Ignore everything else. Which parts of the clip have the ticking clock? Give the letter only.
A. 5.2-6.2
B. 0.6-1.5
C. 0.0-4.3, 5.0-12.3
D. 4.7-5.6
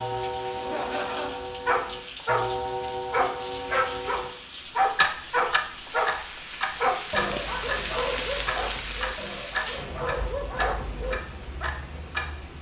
C.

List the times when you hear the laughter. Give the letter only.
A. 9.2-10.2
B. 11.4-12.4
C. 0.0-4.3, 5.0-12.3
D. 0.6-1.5
D.